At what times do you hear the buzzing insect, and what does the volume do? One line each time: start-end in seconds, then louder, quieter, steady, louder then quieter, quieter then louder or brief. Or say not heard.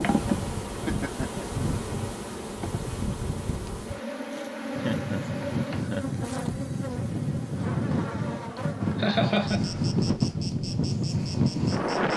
0.0-12.1 quieter.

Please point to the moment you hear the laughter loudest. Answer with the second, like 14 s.
9 s.